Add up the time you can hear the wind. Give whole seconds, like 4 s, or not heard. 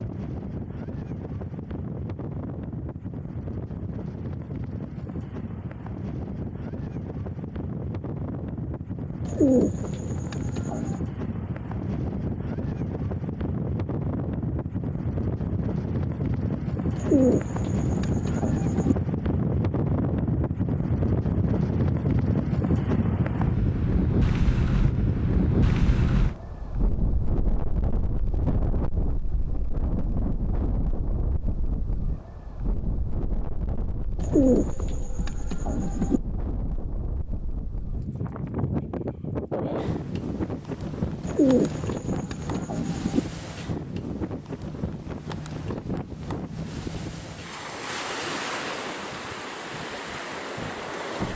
51 s.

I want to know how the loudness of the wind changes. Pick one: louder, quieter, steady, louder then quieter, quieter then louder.
louder then quieter.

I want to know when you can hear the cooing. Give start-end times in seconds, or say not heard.
9.2-11.0, 16.9-18.9, 34.2-36.2, 41.2-43.2.